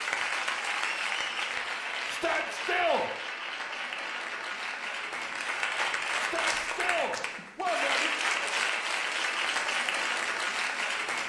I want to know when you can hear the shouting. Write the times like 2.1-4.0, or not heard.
2.0-3.1, 6.2-8.1.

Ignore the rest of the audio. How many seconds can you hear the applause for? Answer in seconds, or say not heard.
11 s.